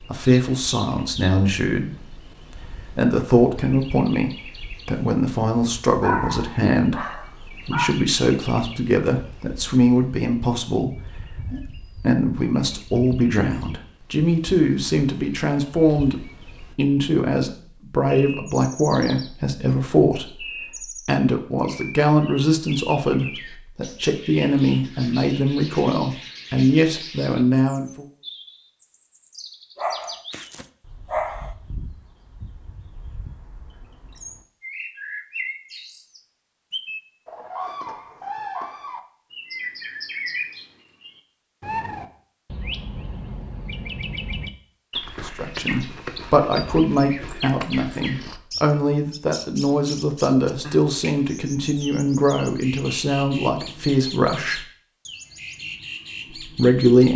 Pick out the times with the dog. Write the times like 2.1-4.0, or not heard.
6.0-8.0, 29.8-31.5.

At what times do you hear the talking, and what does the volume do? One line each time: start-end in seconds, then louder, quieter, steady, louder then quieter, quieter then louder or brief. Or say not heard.
0.1-28.1 steady
45.2-54.6 steady
56.5-57.1 brief.